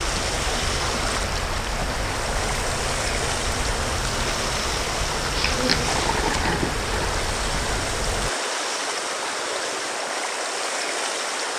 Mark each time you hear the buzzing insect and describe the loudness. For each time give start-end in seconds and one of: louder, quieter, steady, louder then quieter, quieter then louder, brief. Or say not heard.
0.0-8.3 steady.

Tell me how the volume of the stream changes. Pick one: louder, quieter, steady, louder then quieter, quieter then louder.
steady.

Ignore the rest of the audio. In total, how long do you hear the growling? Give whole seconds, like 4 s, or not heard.
2 s.